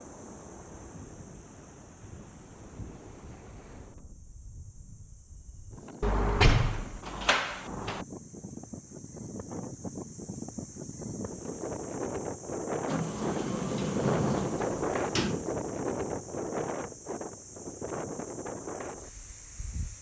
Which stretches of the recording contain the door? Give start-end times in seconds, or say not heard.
6.0-8.1, 12.8-15.4.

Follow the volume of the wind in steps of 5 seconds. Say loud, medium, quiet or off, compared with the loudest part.
quiet, medium, loud, loud.